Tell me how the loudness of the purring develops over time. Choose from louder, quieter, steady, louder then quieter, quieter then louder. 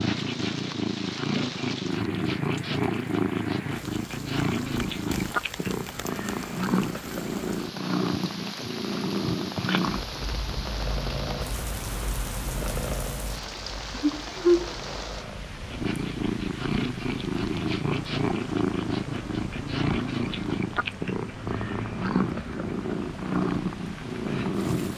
steady.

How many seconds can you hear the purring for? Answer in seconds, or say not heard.
25 s.